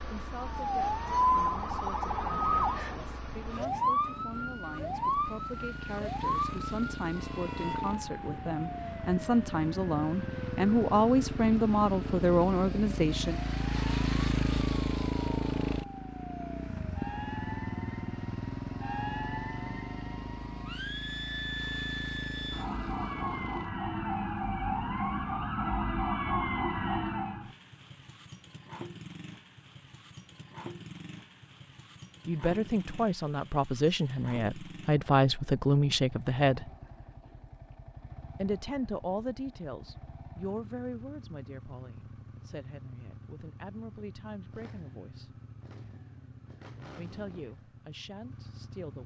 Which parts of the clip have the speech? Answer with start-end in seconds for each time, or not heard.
0.1-13.4, 32.2-36.7, 38.4-45.4, 47.0-49.0.